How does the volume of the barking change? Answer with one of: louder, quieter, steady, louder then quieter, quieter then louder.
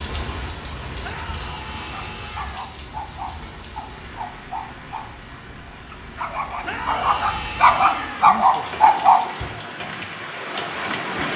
louder.